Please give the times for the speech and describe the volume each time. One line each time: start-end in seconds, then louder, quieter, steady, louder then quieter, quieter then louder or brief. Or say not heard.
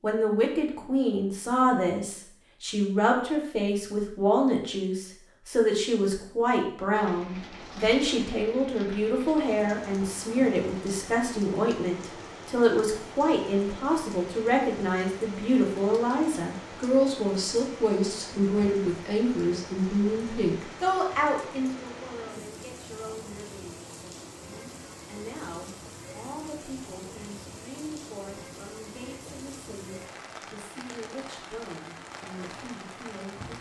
0.0-33.5 quieter.